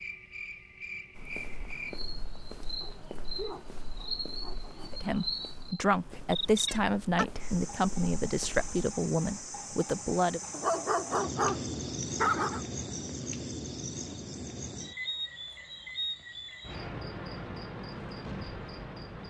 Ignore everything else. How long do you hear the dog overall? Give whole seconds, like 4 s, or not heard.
5 s.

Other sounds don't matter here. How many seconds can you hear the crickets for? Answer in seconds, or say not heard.
19 s.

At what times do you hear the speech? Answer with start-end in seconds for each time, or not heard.
4.9-10.4.